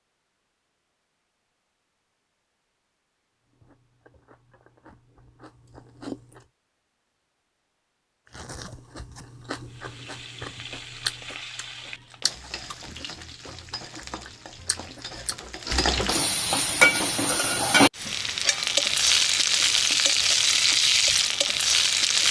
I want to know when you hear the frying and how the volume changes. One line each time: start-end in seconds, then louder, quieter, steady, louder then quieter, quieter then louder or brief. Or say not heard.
9.7-22.2 louder.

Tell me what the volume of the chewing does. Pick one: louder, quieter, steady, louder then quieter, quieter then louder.
louder then quieter.